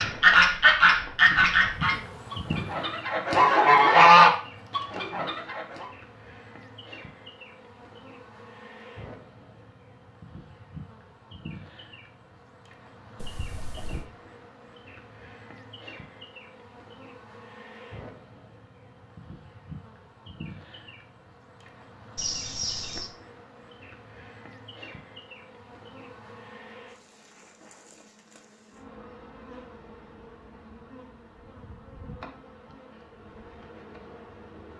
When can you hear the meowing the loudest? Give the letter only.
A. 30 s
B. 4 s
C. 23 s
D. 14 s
C.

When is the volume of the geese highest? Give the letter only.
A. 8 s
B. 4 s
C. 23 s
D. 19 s
B.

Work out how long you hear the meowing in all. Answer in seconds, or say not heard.
2 s.